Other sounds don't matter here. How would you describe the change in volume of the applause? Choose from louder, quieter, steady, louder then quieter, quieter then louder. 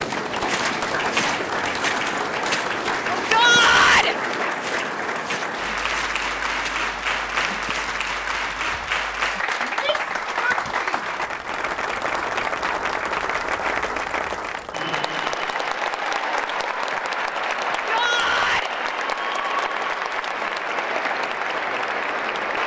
steady.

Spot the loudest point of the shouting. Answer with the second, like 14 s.
4 s.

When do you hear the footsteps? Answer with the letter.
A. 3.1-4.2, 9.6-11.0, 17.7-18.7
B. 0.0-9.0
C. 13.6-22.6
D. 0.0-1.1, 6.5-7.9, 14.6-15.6
B.